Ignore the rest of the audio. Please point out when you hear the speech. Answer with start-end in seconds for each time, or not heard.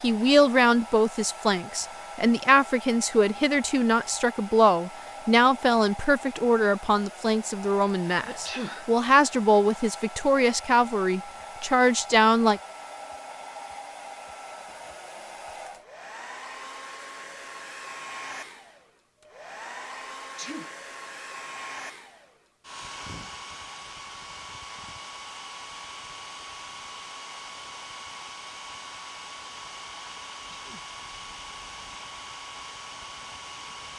0.0-12.6.